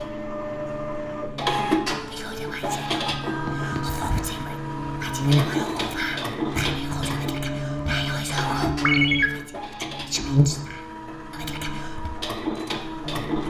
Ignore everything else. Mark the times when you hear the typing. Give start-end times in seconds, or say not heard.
not heard.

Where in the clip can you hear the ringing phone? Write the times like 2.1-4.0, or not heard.
3.0-3.9, 8.8-9.3.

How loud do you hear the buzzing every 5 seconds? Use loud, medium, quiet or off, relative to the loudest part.
medium, loud, loud.